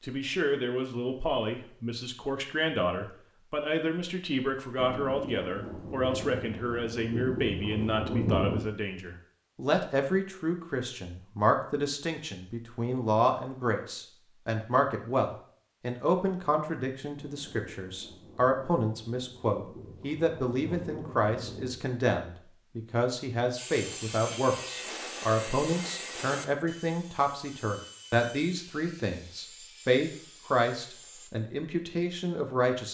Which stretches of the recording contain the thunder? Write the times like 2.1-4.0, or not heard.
4.8-8.7, 17.1-21.8.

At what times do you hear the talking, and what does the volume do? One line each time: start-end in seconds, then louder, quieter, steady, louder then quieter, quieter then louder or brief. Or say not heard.
0.0-32.9 steady.